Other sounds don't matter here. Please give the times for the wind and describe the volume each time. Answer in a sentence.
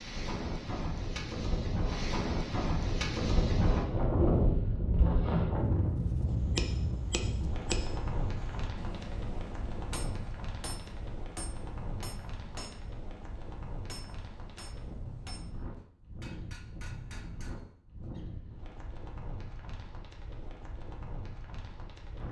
The wind can be heard from 0.0 to 22.2 s, getting quieter.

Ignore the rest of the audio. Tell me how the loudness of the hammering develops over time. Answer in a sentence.
The loudness of the hammering goes down.